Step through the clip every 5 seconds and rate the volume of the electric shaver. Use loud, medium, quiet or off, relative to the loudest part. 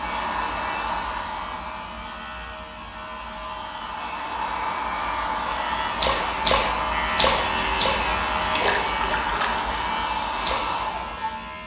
medium, loud, medium.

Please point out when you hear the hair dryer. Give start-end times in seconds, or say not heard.
0.0-11.6.